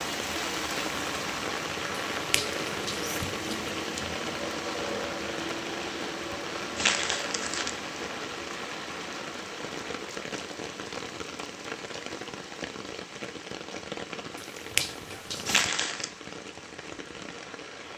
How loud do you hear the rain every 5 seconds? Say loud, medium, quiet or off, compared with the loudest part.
loud, loud, medium, medium.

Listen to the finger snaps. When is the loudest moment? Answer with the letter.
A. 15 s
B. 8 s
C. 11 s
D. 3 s
A.